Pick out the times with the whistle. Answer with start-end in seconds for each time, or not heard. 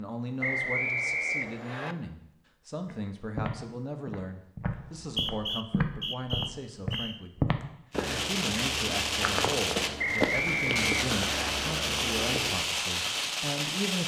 0.4-1.9, 4.8-7.2, 9.9-11.5.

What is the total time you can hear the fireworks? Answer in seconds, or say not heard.
6 s.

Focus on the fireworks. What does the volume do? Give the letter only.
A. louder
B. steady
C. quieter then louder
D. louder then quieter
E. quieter
B.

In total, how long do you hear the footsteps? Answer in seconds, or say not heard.
10 s.